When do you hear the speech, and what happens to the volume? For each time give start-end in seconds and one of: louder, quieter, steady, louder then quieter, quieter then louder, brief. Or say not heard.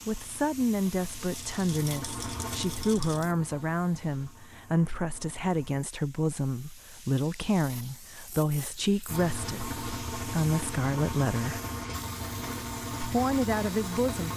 0.1-11.6 steady
13.0-14.3 brief.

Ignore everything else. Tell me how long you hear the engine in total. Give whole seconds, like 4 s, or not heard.
11 s.